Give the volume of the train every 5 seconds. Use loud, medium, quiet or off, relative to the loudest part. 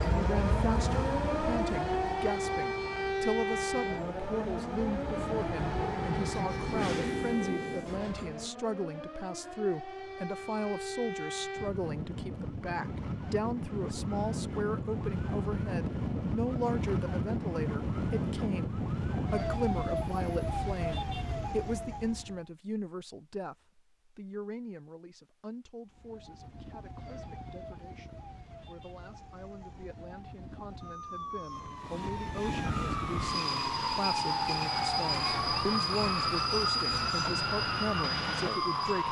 loud, loud, off, off, off, off, loud, loud.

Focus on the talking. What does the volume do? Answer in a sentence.
The volume of the talking goes down, then up.